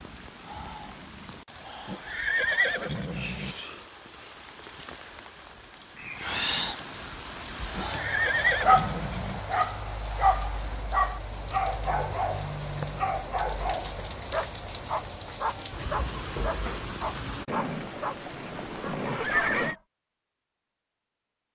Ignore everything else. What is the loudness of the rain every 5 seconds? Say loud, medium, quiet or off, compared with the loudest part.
medium, loud, loud, loud, off.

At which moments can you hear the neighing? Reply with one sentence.
The neighing can be heard from 1.9 to 3.5 s, from 7.8 to 9.4 s and from 17.4 to 19.8 s.